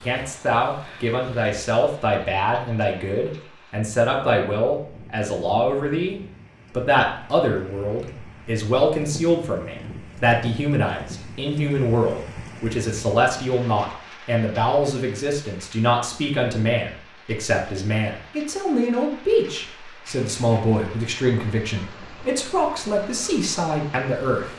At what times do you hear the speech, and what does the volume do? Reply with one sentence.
You can hear the speech from 0.0 to 24.4 s, at a steady volume.